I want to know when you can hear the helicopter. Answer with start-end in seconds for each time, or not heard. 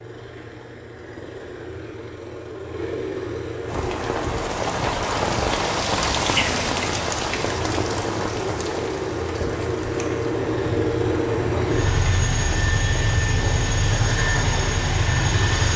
0.0-4.5, 7.2-15.7.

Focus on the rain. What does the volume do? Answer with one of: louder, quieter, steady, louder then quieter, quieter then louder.
quieter.